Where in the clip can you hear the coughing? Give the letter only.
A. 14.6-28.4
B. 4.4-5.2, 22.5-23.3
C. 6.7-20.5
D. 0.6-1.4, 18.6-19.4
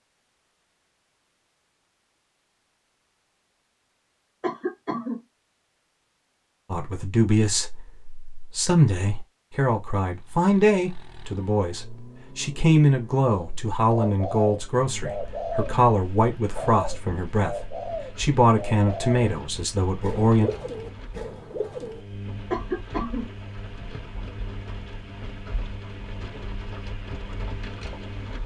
B.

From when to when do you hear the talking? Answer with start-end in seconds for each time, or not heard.
6.7-20.5.